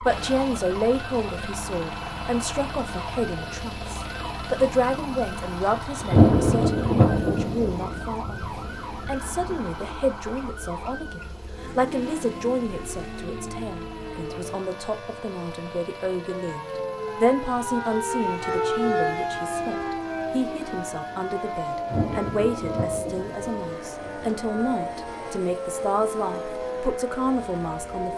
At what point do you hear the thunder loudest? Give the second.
6 s.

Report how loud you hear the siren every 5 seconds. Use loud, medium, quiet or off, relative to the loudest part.
medium, medium, medium, loud, loud, loud.